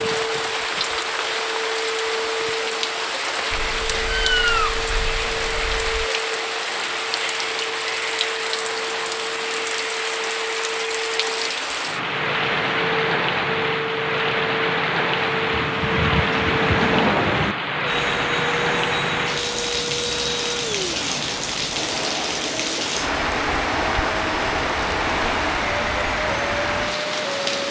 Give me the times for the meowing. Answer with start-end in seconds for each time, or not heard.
3.5-6.0, 15.5-17.6.